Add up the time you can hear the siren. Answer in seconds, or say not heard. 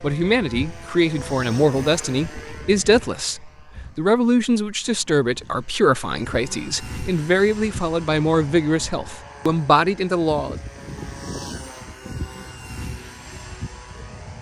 not heard.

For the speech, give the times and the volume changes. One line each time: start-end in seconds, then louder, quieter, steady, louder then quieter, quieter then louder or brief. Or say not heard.
0.0-10.6 steady.